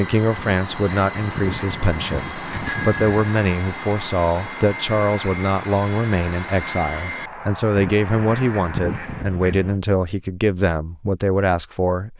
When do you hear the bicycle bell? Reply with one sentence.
The bicycle bell can be heard from 1.9 to 3.4 s.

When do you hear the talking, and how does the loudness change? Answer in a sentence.
The talking can be heard from 0.0 to 12.1 s, at a steady volume.